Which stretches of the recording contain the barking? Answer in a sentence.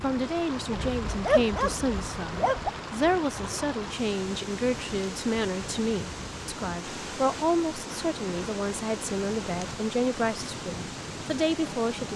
You can hear the barking from 0.7 to 2.7 s.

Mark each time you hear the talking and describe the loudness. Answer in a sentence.
The talking can be heard from 0.0 to 12.1 s, at a steady volume.